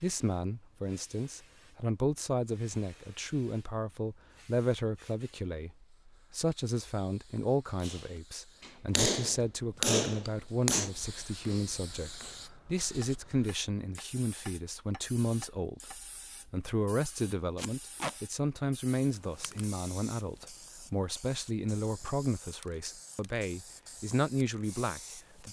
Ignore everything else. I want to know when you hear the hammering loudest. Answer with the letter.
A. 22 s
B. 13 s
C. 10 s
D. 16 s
C.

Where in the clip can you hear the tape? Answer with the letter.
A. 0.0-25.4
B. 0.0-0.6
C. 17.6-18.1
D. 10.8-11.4
C.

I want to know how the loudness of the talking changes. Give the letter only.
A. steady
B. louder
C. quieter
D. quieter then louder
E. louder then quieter
A.